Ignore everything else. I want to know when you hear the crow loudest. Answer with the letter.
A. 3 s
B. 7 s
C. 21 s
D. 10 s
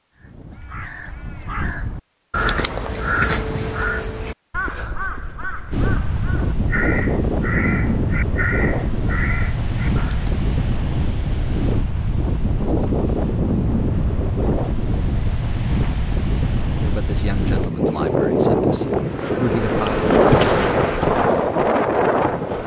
A.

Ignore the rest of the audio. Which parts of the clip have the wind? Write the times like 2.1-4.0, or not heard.
5.7-22.6.